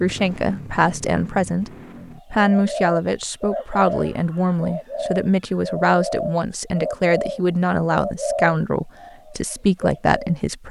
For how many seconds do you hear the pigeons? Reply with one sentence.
You can hear the pigeons for 8 seconds altogether.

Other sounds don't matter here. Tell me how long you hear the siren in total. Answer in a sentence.
You can't hear the siren here.